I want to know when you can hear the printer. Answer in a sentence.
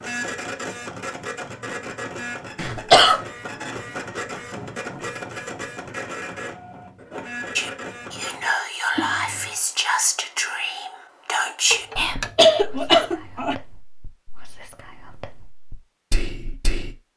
The printer can be heard from 0.0 to 8.6 s.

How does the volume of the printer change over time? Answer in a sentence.
The volume of the printer stays about the same.